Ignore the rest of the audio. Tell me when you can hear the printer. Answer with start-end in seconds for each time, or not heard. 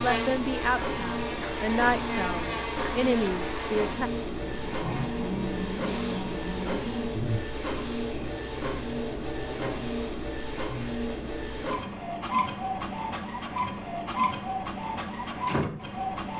0.0-16.3.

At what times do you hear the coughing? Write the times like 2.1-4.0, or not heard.
not heard.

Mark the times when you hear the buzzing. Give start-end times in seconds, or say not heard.
0.0-9.9.